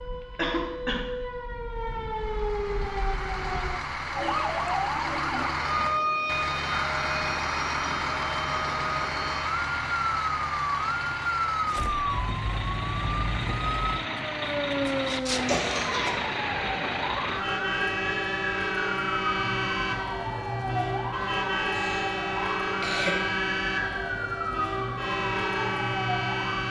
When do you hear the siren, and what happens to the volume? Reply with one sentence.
You can hear the siren from 0.0 to 26.6 s, at a steady volume.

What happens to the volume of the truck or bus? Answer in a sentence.
The volume of the truck or bus stays about the same.